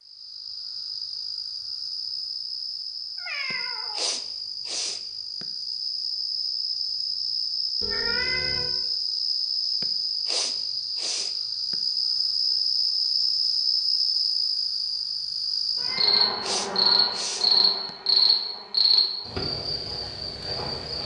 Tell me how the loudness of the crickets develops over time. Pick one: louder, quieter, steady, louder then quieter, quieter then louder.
louder.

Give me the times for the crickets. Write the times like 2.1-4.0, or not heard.
0.0-21.0.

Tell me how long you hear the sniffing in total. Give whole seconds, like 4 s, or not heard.
6 s.